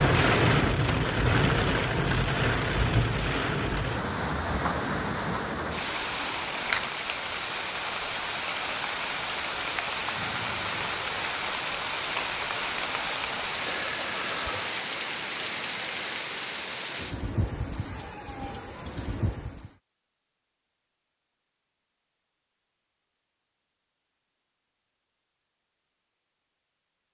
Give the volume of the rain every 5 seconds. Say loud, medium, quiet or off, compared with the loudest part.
loud, medium, medium, medium, off, off.